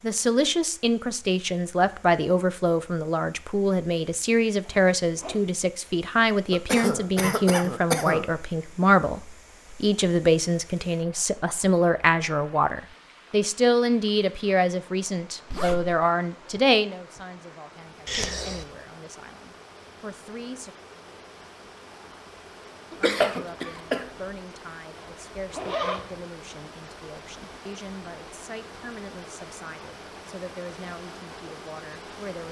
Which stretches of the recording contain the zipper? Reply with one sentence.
You can hear the zipper from 4.6 to 5.4 s, from 15.5 to 15.9 s and from 24.9 to 26.1 s.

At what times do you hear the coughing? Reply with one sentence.
You can hear the coughing from 6.5 to 8.3 s, from 18.1 to 18.6 s and from 22.9 to 24.1 s.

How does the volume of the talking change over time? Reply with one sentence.
The volume of the talking goes down.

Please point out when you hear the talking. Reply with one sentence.
You can hear the talking from 0.0 to 20.8 s and from 22.9 to 32.4 s.